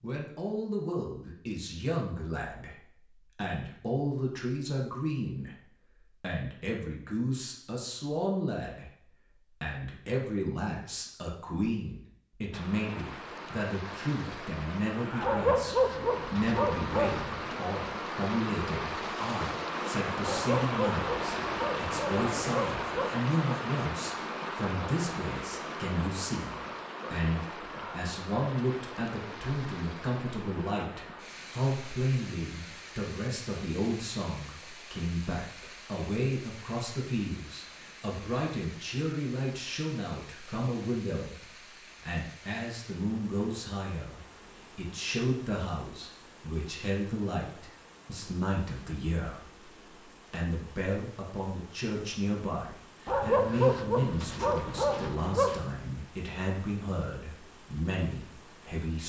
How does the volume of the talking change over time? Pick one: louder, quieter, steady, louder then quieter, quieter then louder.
steady.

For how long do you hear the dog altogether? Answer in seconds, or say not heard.
8 s.